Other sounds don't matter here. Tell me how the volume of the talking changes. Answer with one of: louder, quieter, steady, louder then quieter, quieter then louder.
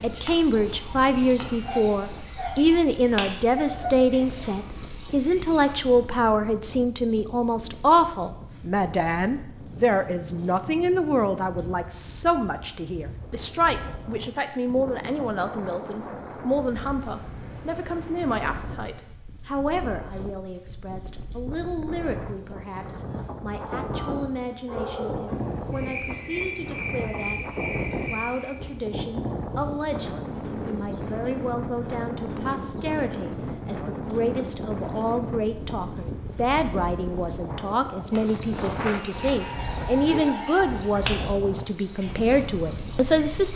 quieter then louder.